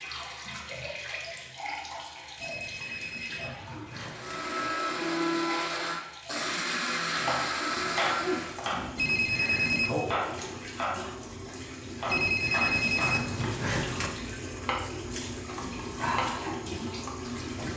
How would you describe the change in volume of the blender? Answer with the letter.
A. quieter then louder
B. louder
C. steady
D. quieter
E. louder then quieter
C.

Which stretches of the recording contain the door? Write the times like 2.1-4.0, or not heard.
not heard.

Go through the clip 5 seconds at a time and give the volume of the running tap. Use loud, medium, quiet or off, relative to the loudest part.
medium, loud, loud, loud.